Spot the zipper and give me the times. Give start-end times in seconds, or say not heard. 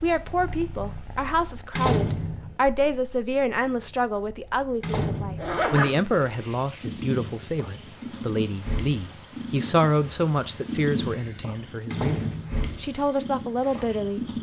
5.3-6.5.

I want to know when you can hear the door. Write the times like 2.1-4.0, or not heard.
1.8-2.5, 4.8-5.7, 11.9-12.7.